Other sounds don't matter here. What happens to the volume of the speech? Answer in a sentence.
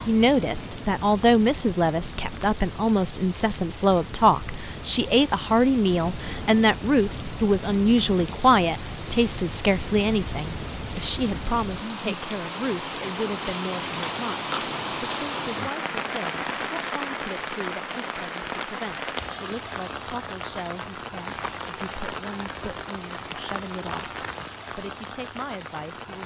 The volume of the speech goes down.